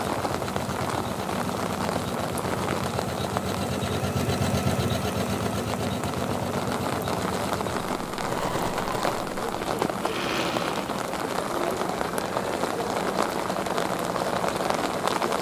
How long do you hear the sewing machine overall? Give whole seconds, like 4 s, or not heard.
15 s.